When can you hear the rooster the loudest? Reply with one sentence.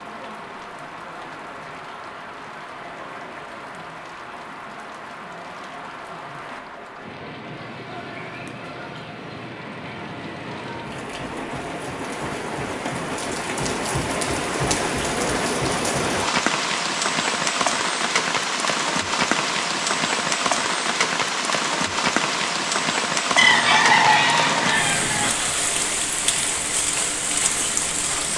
The loudest moment of the rooster is at 24 seconds.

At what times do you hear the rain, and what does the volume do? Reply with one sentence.
You can hear the rain from 0.0 to 28.3 s, getting louder.